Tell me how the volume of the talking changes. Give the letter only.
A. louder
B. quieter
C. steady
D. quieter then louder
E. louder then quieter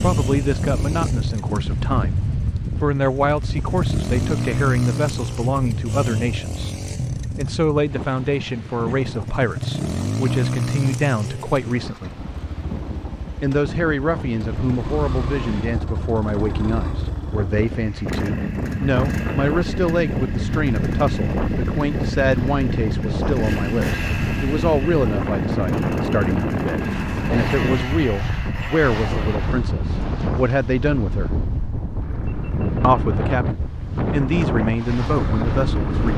C.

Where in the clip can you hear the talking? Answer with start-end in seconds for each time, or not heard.
0.0-6.7, 7.3-12.2, 13.4-31.3, 32.8-36.1.